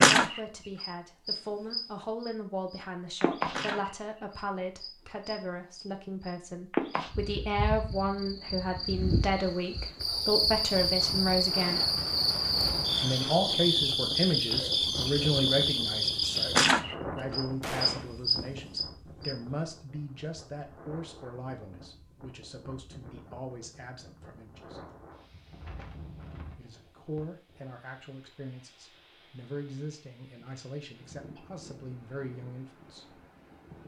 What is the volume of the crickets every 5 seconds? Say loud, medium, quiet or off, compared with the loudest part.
loud, medium, loud, loud, off, off, off.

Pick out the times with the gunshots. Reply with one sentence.
You can hear the gunshots from 17.6 to 18.1 s.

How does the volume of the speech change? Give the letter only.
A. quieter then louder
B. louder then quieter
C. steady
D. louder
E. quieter
B.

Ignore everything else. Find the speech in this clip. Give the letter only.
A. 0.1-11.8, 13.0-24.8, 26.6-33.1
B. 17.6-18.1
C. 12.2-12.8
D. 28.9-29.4
A.